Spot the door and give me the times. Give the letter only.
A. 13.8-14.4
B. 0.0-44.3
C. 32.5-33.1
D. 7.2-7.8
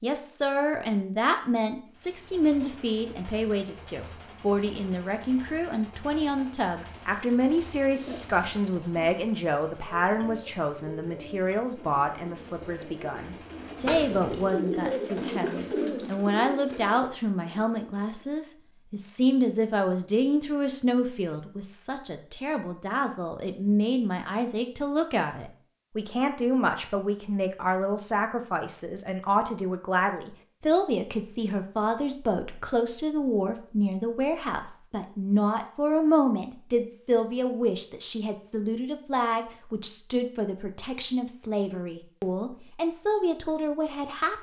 A.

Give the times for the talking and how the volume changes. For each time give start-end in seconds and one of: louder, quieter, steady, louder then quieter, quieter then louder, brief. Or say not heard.
0.0-44.3 steady.